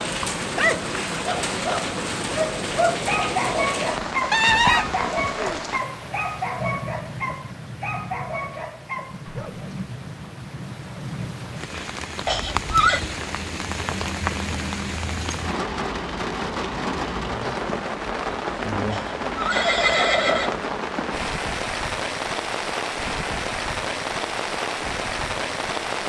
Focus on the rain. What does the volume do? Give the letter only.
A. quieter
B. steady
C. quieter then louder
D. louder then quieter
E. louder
C.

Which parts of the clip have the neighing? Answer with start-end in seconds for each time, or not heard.
4.3-5.6, 12.2-13.0, 18.9-20.6.